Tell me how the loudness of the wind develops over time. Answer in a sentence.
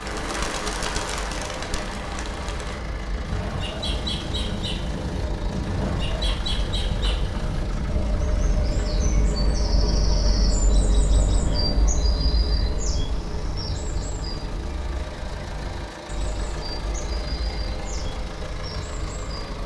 The volume of the wind goes up.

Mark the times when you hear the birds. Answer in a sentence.
The birds can be heard from 0.0 to 19.6 s.